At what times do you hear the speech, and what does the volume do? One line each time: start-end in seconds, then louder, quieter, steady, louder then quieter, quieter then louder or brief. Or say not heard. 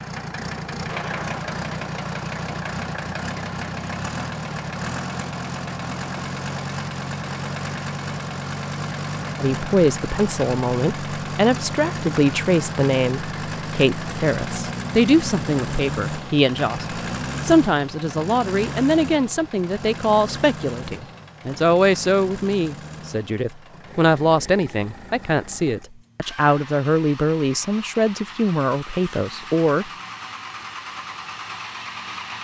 9.3-29.9 steady.